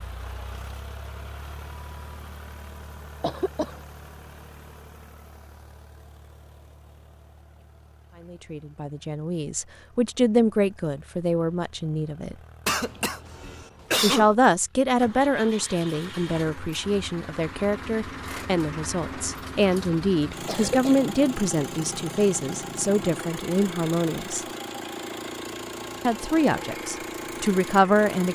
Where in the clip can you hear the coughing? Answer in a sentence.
The coughing can be heard from 3.2 to 3.8 s, from 12.7 to 14.3 s and from 20.4 to 21.0 s.